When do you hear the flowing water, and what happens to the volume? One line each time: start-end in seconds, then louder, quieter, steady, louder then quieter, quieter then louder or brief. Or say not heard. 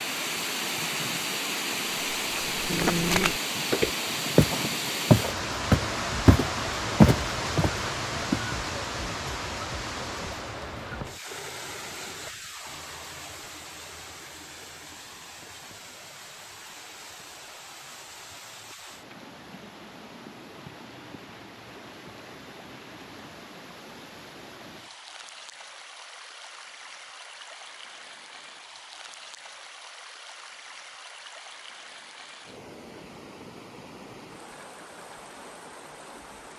0.0-36.5 quieter.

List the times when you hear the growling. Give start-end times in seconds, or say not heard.
2.6-3.4.